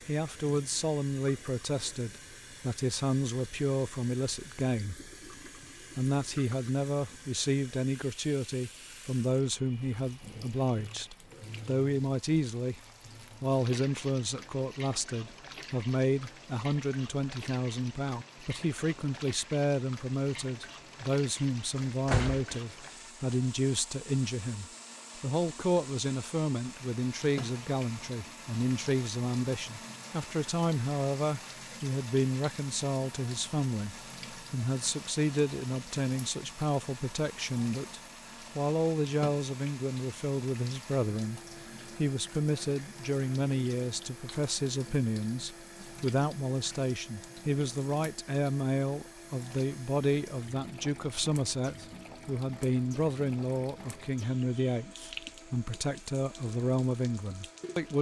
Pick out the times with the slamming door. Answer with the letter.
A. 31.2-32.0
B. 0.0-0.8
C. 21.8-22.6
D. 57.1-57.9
C.